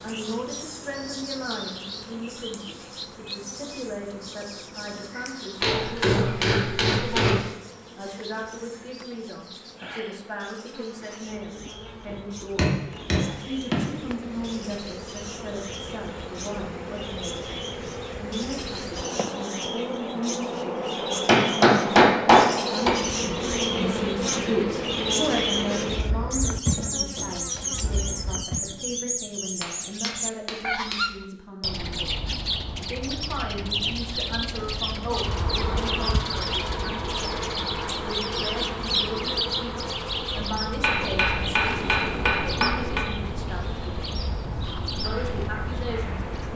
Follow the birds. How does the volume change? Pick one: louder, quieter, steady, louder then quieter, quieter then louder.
louder.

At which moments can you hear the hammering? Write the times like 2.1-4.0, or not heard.
5.6-7.4, 12.1-13.9, 21.2-22.9, 29.6-31.1, 40.8-43.0.